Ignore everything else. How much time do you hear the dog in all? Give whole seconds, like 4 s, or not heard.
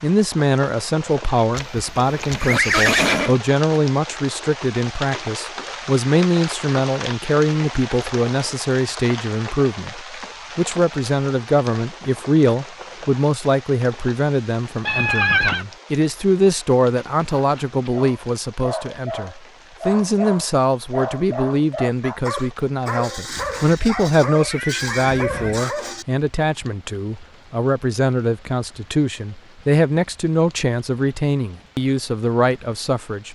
9 s.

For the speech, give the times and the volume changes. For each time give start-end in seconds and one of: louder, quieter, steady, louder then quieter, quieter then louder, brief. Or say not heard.
0.0-33.2 steady.